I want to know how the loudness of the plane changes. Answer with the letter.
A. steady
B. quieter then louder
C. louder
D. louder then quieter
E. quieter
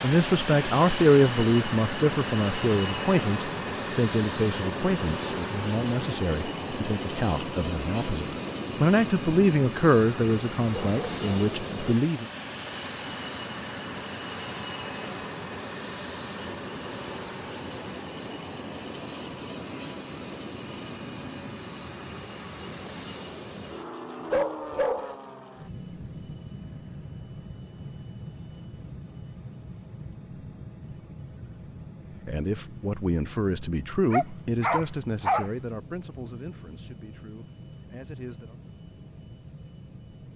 E.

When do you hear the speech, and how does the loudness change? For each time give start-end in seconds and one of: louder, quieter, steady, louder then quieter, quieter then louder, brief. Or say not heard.
0.0-12.2 quieter then louder
32.2-38.5 quieter.